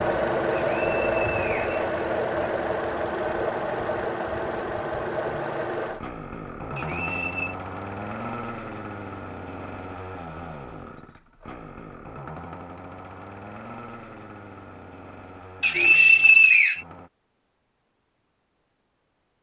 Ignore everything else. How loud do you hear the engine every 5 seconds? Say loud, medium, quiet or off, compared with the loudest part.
loud, medium, quiet, quiet.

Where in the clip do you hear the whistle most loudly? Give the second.
16 s.